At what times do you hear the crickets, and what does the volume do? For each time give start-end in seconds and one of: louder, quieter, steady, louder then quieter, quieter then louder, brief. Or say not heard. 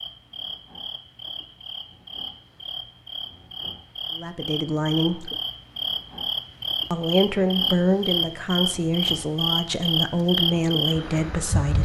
0.0-11.8 louder.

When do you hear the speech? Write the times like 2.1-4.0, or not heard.
4.2-5.3, 6.9-11.8.